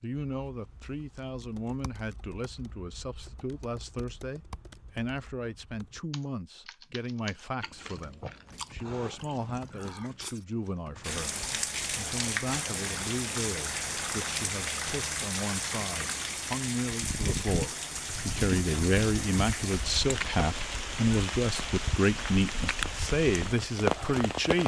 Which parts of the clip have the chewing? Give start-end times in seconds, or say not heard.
7.6-10.4.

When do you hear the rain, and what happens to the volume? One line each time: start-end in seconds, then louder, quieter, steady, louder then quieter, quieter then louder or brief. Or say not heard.
11.0-24.6 steady.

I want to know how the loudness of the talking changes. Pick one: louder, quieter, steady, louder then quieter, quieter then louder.
louder.